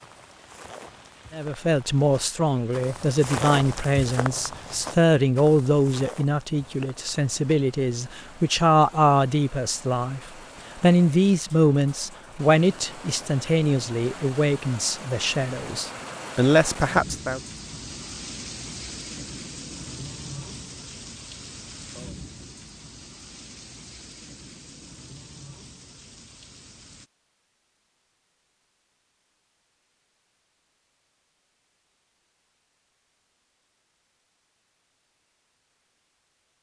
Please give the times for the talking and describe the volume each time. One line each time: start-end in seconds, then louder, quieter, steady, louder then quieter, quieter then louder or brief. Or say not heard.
1.3-17.4 steady.